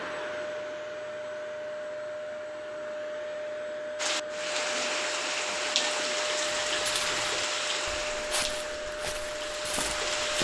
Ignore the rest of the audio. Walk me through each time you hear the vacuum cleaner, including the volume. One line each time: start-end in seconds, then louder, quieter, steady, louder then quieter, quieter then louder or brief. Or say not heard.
0.0-10.4 steady.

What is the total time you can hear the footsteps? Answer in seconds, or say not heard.
4 s.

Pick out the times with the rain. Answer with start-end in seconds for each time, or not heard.
4.0-10.4.